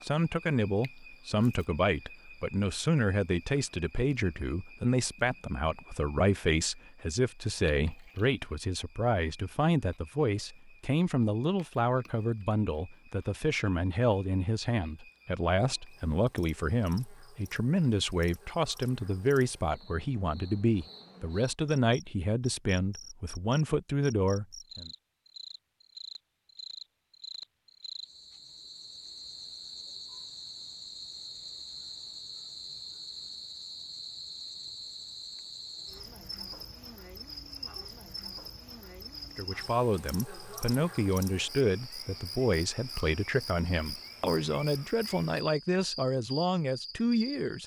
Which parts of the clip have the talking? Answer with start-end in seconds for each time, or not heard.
0.0-24.9, 39.4-47.6.